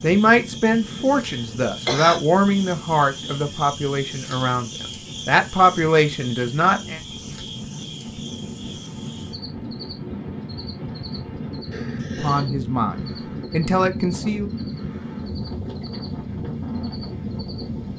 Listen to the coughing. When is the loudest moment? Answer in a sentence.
The volume of the coughing peaks at 2 seconds.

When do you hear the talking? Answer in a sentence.
The talking can be heard from 0.0 to 7.0 s and from 12.2 to 14.4 s.